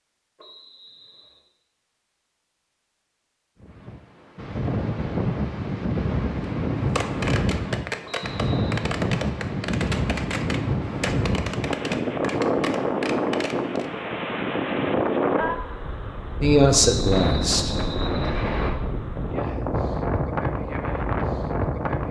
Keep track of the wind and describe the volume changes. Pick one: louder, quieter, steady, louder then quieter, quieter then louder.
steady.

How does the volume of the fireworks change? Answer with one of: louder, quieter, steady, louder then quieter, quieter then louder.
steady.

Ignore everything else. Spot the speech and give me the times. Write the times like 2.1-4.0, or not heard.
16.4-17.7.